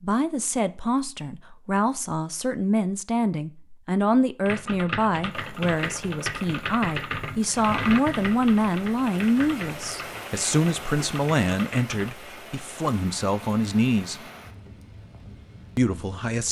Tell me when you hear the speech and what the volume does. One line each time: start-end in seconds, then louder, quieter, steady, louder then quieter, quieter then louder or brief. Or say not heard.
0.0-14.2 steady
15.8-16.4 brief.